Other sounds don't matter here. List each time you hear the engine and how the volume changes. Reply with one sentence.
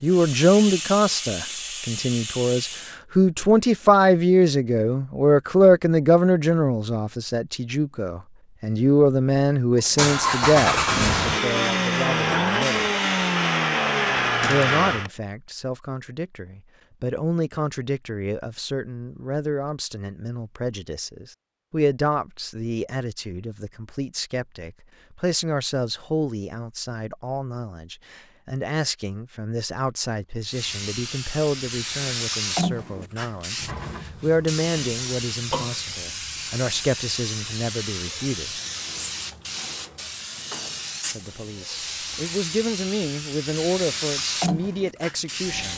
The engine can be heard from 9.8 to 15.1 s, at a steady volume.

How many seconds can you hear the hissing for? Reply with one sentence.
The hissing can be heard for 18 seconds in total.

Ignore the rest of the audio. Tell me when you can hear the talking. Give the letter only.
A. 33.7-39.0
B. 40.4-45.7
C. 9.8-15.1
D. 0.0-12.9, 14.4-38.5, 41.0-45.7
D.